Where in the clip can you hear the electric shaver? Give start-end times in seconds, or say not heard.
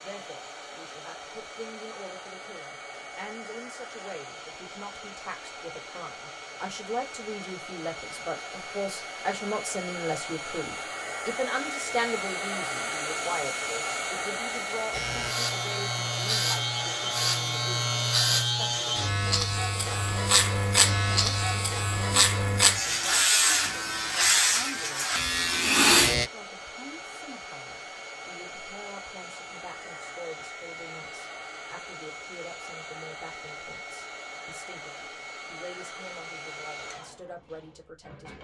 14.9-26.3.